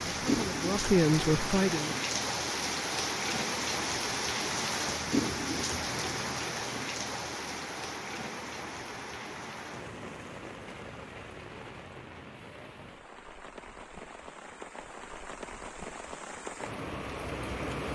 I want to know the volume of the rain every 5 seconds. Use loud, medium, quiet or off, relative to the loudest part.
loud, loud, quiet, medium.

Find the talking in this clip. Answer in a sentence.
The talking can be heard from 0.1 to 1.9 s.